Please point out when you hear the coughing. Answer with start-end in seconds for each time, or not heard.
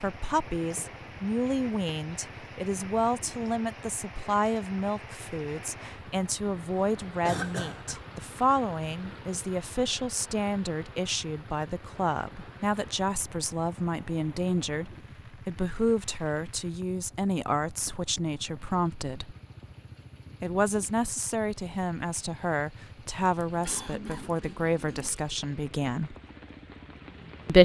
7.2-8.0, 23.4-25.1.